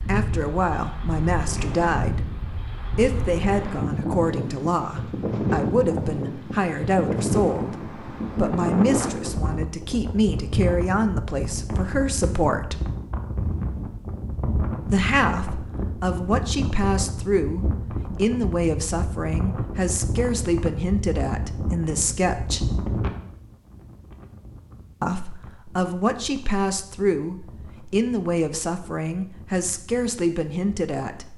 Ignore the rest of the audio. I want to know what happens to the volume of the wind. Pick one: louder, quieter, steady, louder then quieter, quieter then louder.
quieter.